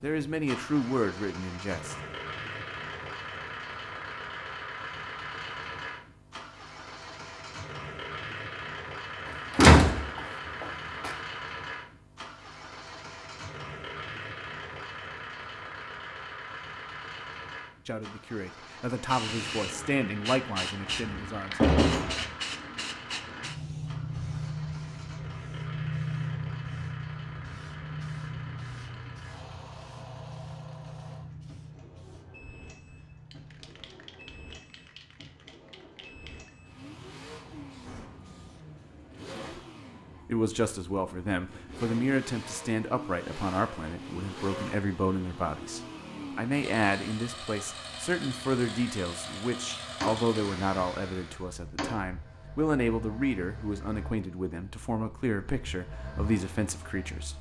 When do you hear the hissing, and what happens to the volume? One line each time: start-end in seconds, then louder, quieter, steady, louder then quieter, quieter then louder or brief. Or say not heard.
18.9-39.0 quieter.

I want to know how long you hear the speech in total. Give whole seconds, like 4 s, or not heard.
23 s.